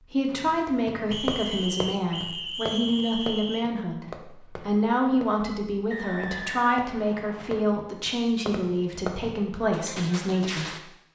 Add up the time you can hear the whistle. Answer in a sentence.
The whistle can be heard for 4 seconds in total.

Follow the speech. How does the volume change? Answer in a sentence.
The volume of the speech stays about the same.